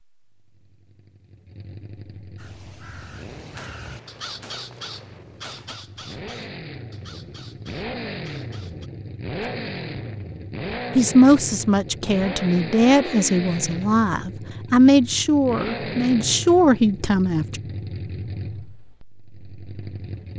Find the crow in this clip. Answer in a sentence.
The crow can be heard from 2.4 to 8.9 s.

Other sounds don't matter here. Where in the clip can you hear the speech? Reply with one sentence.
You can hear the speech from 10.9 to 17.6 s.